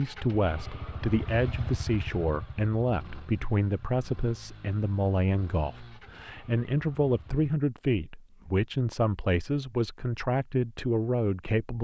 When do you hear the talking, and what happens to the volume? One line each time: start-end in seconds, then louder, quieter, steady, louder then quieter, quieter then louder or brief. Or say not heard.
0.0-11.7 steady.